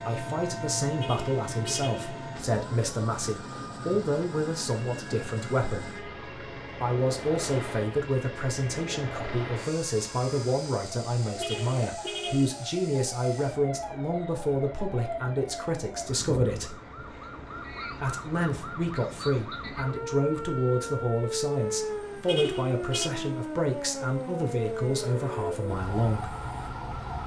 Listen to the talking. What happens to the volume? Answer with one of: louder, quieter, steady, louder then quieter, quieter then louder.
steady.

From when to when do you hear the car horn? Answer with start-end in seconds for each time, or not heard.
0.9-2.1, 11.4-12.7, 22.2-23.1.